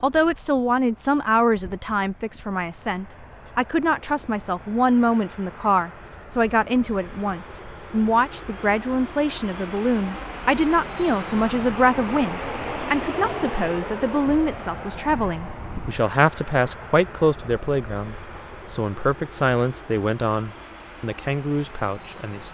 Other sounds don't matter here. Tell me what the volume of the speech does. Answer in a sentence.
The volume of the speech stays about the same.